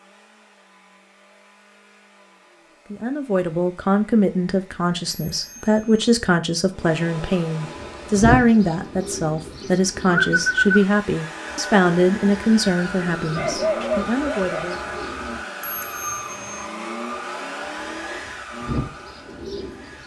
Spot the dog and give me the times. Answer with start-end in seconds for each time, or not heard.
13.3-14.8.